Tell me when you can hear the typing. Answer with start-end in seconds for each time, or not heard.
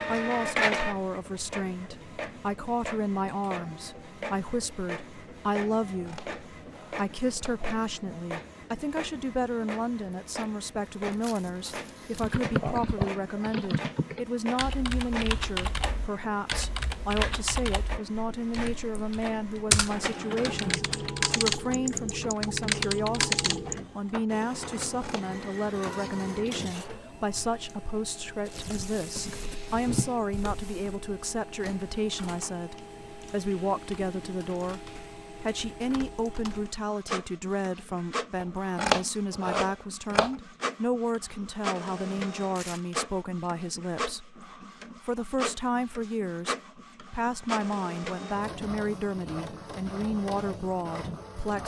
12.2-23.9.